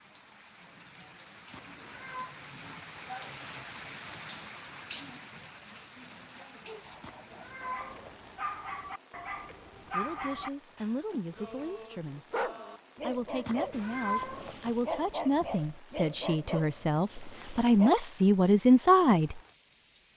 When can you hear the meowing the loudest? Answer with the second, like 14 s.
14 s.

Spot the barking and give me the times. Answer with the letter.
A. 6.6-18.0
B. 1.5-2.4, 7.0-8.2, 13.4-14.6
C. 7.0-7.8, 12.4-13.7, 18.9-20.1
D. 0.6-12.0
A.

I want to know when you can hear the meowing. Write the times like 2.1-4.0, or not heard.
1.5-2.4, 7.0-8.2, 13.4-14.6.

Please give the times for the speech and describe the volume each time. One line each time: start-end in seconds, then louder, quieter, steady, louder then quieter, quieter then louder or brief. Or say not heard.
9.9-19.4 louder.